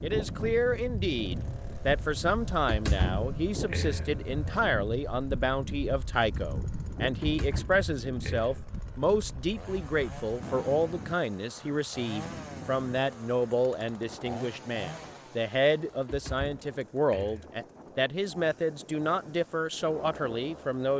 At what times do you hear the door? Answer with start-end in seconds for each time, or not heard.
2.5-4.2, 7.0-8.7, 16.1-17.5.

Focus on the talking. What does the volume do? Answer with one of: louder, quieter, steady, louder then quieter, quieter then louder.
steady.